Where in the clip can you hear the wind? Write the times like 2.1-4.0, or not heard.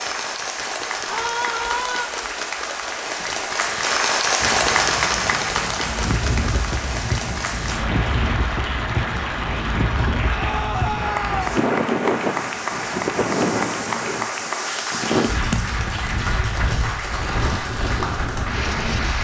4.4-19.1.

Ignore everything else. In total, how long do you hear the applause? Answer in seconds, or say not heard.
19 s.